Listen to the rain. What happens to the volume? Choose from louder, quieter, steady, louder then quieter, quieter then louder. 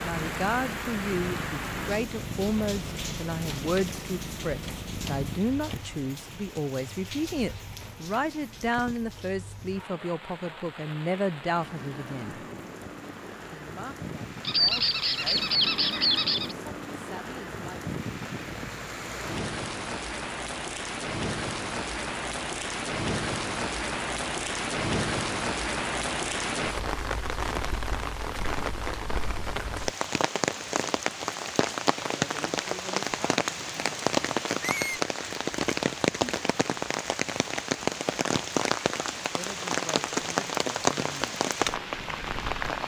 louder.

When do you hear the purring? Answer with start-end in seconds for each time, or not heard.
0.0-5.4.